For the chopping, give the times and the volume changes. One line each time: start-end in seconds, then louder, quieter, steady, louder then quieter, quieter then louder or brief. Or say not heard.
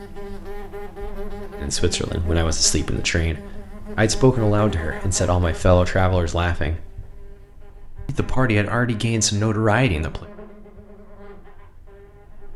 not heard.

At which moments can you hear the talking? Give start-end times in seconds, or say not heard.
1.6-6.9, 8.1-10.2.